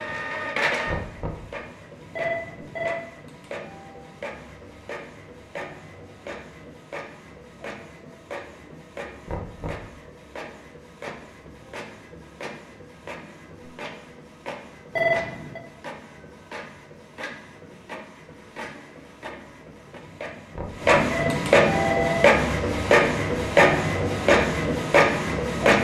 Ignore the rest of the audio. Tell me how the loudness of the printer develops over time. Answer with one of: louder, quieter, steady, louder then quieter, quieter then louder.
quieter then louder.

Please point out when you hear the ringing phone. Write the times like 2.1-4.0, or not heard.
2.1-3.0, 14.9-15.6, 21.1-22.4.